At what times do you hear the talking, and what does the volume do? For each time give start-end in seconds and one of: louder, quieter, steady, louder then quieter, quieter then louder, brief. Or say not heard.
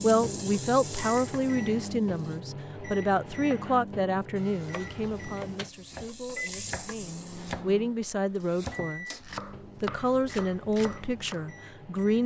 0.0-9.2 quieter then louder
9.8-12.2 brief.